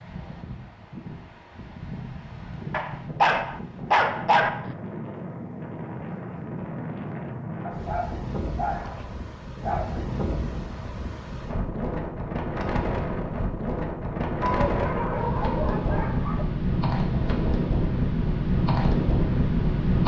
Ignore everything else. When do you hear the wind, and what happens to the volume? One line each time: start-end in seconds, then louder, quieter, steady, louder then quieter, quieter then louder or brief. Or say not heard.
0.0-20.0 louder.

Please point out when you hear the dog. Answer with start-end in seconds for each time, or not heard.
2.7-4.8, 7.7-10.0, 14.4-16.4.